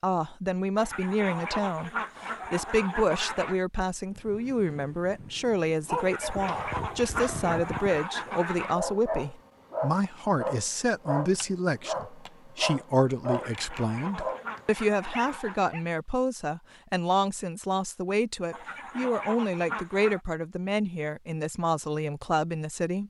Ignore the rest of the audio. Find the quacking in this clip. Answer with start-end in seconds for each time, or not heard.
0.8-3.6, 6.0-8.8, 13.2-15.7, 18.5-20.2.